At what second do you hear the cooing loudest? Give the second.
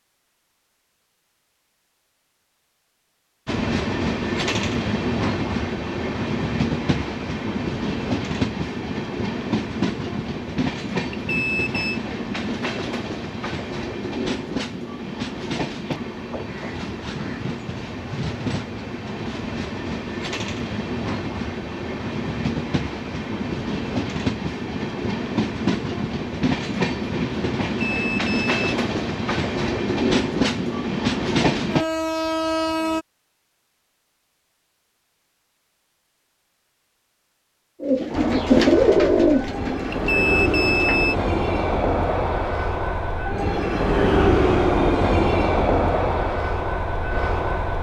39 s.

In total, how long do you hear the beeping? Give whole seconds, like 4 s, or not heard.
3 s.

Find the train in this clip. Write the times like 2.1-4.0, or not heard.
3.5-33.0, 38.1-47.7.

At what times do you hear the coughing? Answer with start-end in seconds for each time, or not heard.
not heard.